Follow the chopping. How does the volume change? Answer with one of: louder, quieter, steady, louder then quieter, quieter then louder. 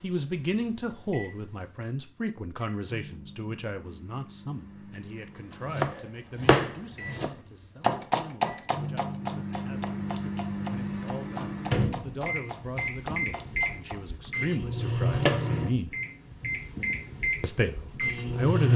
quieter.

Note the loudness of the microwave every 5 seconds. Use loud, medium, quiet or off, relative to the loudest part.
quiet, medium, loud, loud.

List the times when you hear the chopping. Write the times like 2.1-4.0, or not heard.
5.7-14.3.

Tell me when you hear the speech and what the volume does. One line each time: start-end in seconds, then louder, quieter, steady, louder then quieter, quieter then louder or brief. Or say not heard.
0.0-15.9 quieter then louder
17.4-18.7 brief.